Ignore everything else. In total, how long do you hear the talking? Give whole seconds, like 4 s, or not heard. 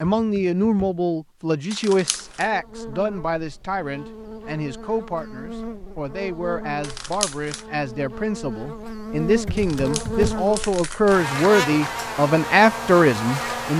14 s.